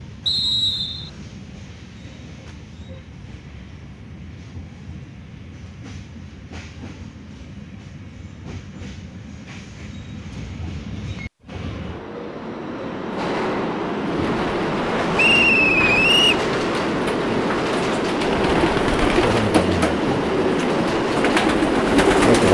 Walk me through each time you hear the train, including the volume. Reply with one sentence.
You can hear the train from 0.0 to 22.5 s, getting louder.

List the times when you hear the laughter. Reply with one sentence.
The laughter can't be heard in this clip.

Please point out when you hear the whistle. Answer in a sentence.
The whistle can be heard from 0.2 to 1.1 s and from 15.2 to 16.4 s.